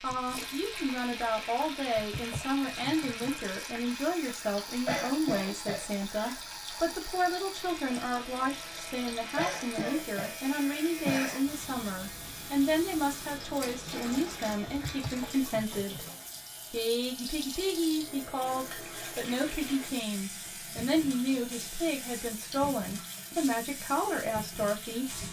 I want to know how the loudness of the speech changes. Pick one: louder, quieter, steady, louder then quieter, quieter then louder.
steady.